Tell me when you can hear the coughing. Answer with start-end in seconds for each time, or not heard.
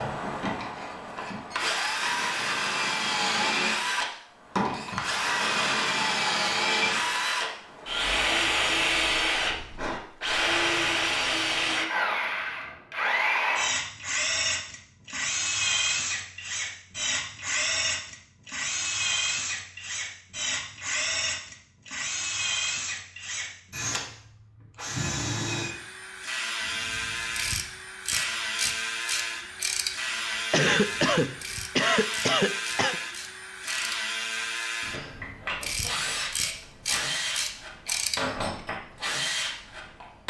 30.5-33.0.